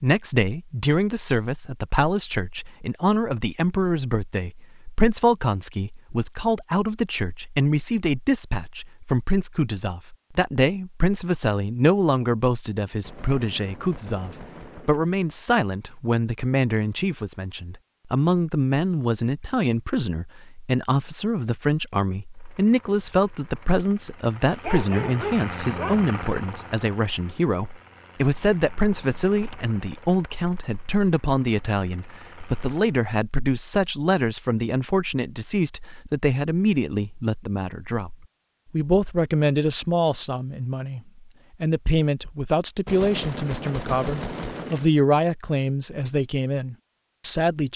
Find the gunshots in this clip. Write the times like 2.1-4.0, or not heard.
13.0-15.1, 42.9-44.9.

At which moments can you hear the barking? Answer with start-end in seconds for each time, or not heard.
24.6-26.1.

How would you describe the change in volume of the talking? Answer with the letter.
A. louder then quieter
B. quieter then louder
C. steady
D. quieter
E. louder
C.